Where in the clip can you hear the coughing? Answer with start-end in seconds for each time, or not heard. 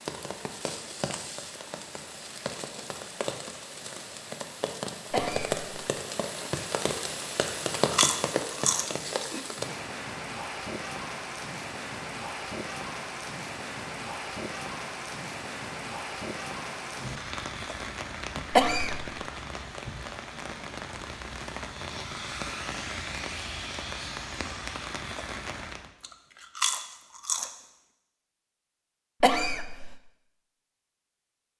5.1-5.5, 18.5-19.1, 29.2-29.9.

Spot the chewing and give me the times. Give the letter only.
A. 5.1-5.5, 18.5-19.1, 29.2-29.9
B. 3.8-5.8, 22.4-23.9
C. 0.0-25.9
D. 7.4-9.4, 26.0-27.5
D.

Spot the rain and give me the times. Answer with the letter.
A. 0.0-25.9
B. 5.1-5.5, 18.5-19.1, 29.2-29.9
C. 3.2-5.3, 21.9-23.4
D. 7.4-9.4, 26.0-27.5
A.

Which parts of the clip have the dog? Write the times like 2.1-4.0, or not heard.
not heard.